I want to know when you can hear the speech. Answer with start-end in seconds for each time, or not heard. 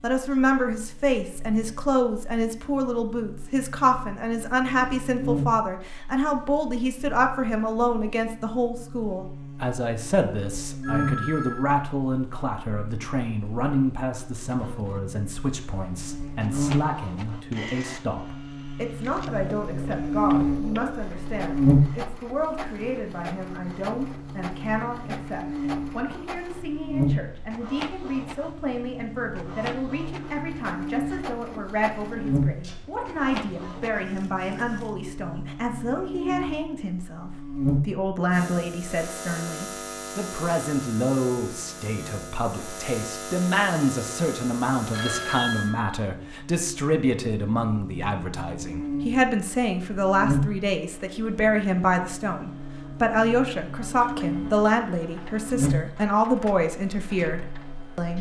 0.0-58.1.